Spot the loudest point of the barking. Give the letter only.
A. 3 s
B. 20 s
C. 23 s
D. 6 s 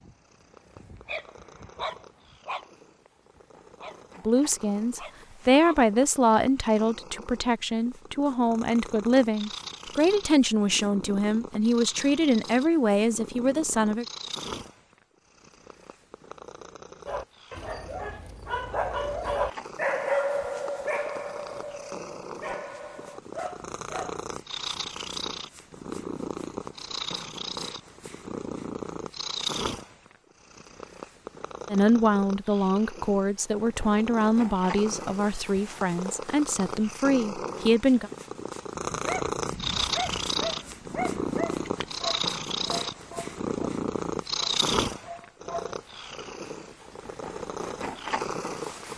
B.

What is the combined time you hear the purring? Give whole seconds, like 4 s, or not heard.
49 s.